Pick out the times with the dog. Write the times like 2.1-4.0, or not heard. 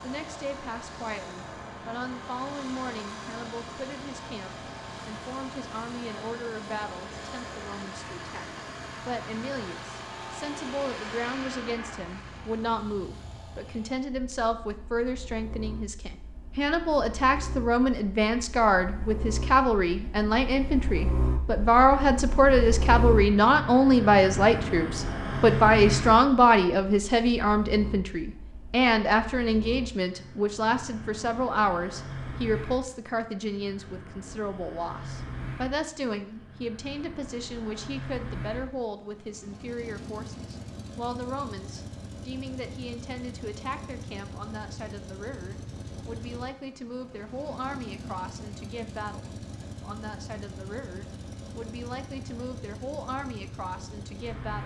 not heard.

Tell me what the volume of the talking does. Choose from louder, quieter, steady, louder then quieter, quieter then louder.
louder then quieter.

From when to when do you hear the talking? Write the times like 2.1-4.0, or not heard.
0.0-8.4, 9.1-54.6.